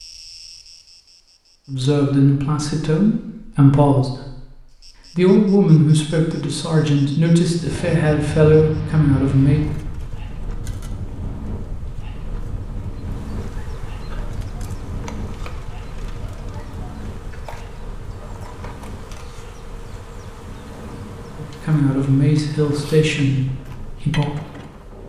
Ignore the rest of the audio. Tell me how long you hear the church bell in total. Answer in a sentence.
The church bell can't be heard in this clip.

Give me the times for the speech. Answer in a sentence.
The speech can be heard from 1.6 to 4.5 s, from 5.2 to 9.6 s and from 21.4 to 24.4 s.